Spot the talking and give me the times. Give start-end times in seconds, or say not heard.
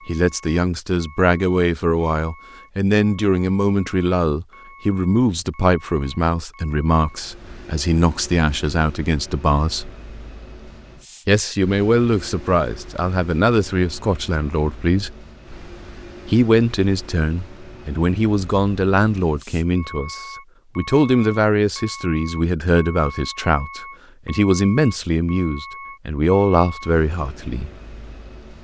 0.1-9.9, 11.2-15.2, 16.2-27.7.